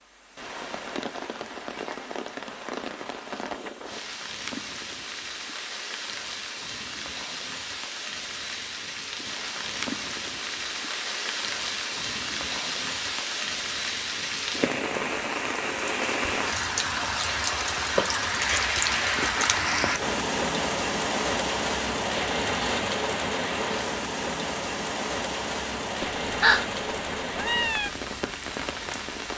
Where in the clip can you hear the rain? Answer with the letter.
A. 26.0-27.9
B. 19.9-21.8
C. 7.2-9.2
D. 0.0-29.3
D.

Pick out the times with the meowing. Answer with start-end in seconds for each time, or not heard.
26.0-27.9.